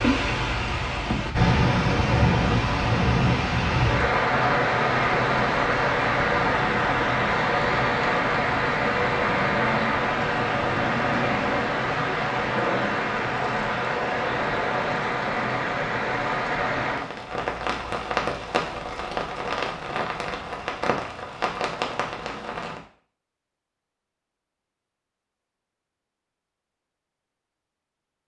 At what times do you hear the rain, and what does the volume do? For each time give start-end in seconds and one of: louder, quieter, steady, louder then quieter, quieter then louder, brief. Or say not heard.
0.0-22.8 quieter.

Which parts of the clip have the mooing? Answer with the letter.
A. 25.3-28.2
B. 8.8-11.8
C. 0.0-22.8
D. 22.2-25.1
B.